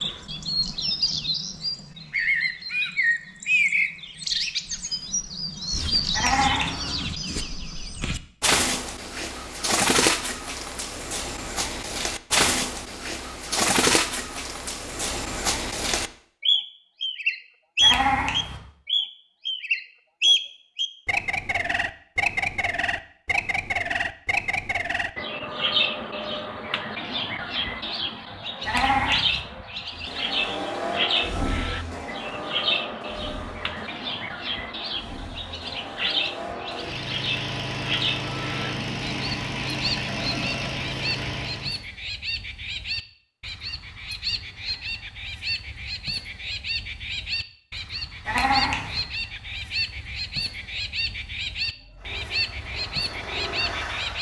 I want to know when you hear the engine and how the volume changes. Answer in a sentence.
You can hear the engine from 29.9 to 41.8 s, getting quieter then louder; and briefly from 51.7 to 54.1 s.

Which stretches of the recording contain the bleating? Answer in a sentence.
You can hear the bleating from 6.1 to 6.9 s, from 17.8 to 18.6 s, from 28.6 to 29.4 s and from 48.2 to 49.0 s.